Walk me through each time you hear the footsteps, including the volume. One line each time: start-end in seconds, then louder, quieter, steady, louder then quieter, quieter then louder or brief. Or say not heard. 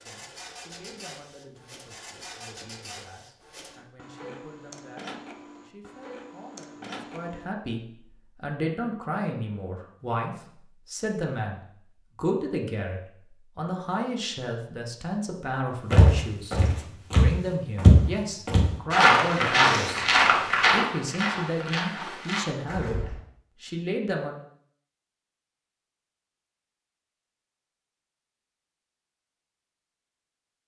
15.9-23.2 louder then quieter.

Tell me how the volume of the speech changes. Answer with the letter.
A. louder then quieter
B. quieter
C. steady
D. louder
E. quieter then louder
D.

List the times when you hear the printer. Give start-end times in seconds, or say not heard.
0.0-7.5.